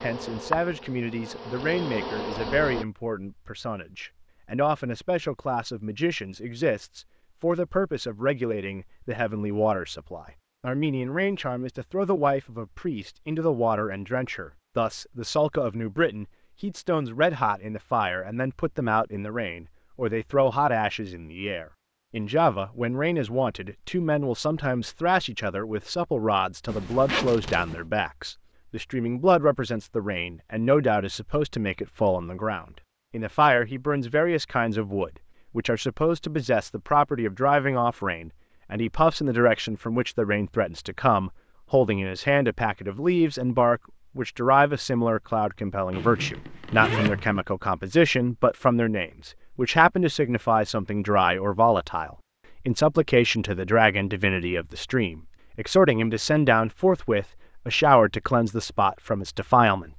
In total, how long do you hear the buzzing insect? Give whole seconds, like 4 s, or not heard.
3 s.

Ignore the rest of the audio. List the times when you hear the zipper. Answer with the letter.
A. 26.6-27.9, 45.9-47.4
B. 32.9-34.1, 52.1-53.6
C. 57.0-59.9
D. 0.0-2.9
A.